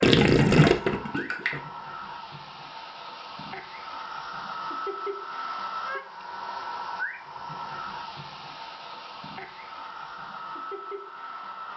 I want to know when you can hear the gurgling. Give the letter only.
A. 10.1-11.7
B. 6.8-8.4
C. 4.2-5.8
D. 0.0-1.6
D.